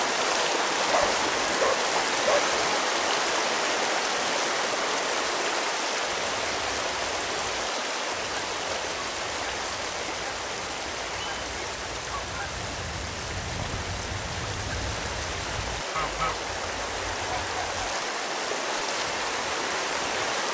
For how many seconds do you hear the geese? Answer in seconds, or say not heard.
12 s.